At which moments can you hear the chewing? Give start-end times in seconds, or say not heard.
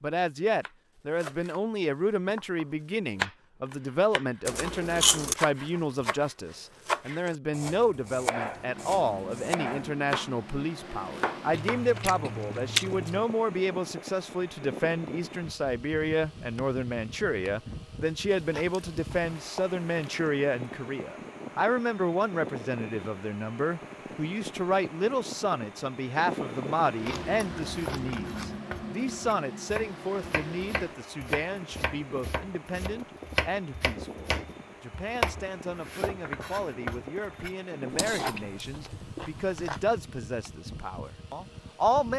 4.5-5.3, 11.5-13.2, 18.2-20.3, 27.1-28.6, 38.1-39.9.